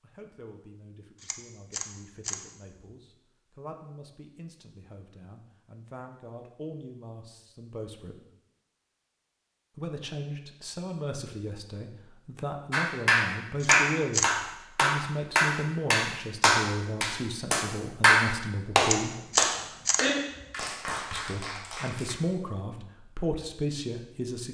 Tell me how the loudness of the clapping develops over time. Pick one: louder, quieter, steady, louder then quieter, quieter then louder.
quieter.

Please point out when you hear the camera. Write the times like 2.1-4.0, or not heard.
1.2-2.9, 13.6-14.3, 18.8-20.4.